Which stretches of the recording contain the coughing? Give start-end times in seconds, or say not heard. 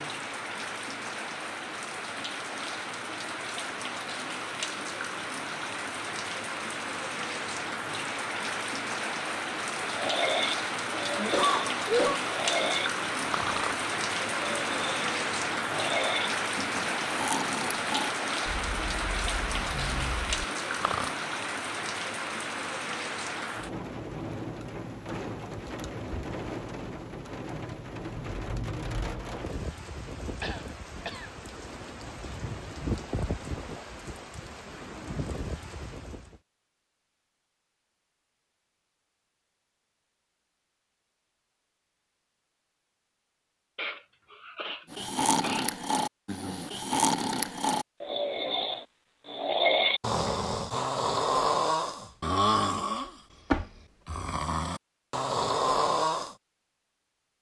11.2-12.2, 30.4-31.3, 43.8-45.7.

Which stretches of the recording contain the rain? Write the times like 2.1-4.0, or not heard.
0.0-36.4.